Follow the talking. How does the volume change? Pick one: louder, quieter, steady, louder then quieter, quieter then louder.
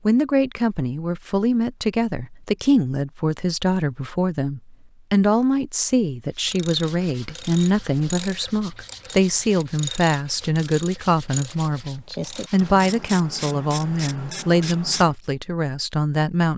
steady.